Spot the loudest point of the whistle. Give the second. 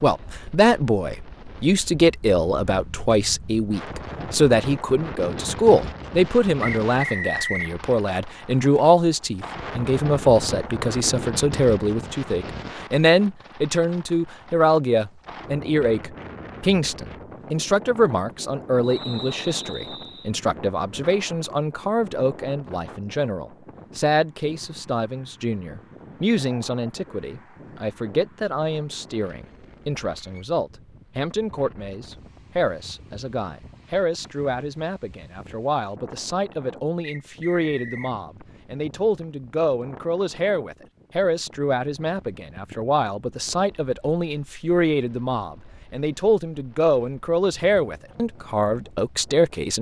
7 s.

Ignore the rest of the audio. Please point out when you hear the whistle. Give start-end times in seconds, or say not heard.
6.6-7.8, 18.8-20.3, 37.0-38.1.